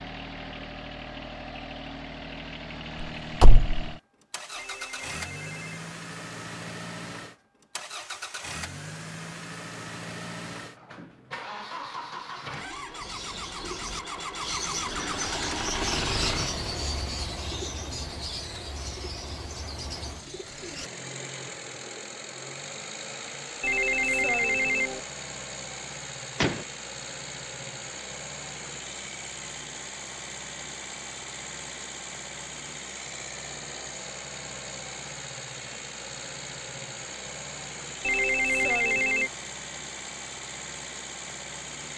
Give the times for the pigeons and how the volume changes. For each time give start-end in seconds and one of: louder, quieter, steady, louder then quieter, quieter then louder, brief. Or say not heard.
13.0-20.9 quieter.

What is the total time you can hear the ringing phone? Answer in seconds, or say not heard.
4 s.